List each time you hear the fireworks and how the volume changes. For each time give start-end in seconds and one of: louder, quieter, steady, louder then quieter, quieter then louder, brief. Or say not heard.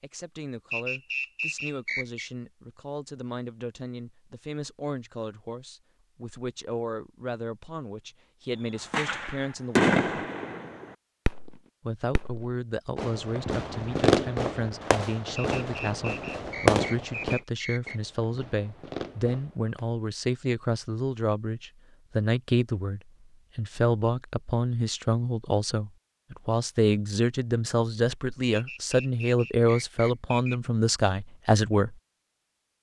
8.9-11.6 brief
12.2-19.9 louder then quieter.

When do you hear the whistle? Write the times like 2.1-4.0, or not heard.
0.7-2.3, 15.3-18.0, 28.5-30.6.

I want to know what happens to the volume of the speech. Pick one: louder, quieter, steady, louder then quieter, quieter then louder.
louder.